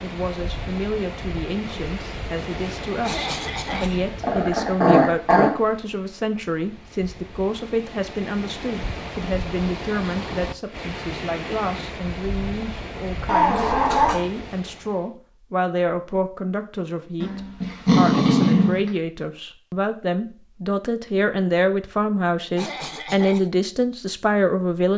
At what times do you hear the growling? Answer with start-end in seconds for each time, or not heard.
3.7-5.5, 13.2-14.2, 17.2-18.9.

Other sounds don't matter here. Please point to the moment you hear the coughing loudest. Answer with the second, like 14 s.
3 s.